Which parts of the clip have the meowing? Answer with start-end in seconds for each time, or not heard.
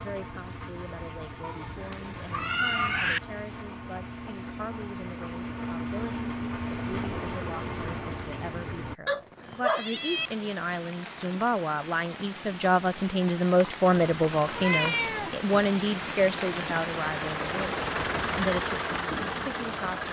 1.4-3.2, 9.1-10.5, 14.5-15.3.